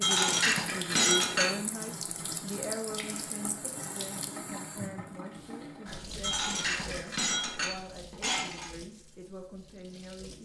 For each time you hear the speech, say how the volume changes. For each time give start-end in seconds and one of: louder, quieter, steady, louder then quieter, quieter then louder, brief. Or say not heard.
0.0-10.3 quieter.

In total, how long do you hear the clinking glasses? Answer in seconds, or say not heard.
4 s.